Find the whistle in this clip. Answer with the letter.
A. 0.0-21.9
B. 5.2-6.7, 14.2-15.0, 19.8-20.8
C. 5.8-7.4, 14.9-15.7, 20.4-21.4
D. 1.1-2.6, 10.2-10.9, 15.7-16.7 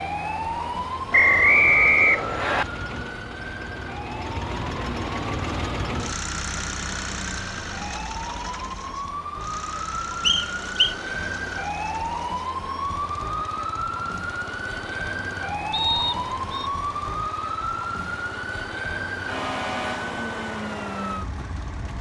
D.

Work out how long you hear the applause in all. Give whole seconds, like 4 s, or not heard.
not heard.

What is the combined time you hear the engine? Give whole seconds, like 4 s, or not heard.
22 s.